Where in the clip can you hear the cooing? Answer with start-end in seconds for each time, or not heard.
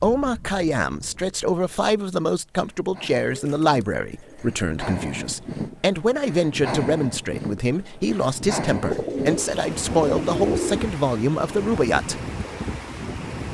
3.1-4.7, 8.8-10.8.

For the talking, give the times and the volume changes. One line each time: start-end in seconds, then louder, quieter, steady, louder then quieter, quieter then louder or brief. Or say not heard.
0.0-12.2 steady.